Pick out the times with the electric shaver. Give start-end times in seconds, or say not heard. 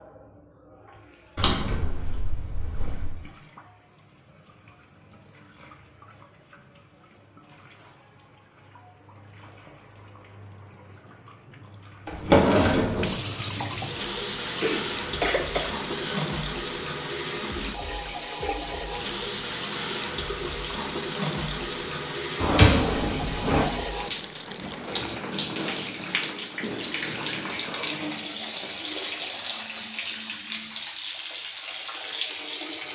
not heard.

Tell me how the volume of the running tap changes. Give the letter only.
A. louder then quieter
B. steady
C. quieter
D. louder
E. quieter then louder
D.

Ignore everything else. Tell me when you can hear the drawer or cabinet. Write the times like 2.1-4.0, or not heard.
1.4-3.2, 12.1-13.2, 22.4-23.6.